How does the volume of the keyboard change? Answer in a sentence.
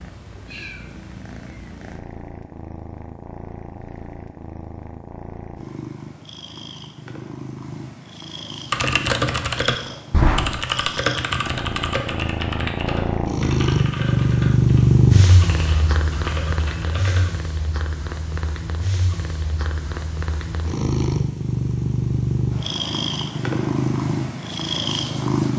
The volume of the keyboard goes down.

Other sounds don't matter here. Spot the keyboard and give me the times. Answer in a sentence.
The keyboard can be heard from 8.7 to 17.3 s.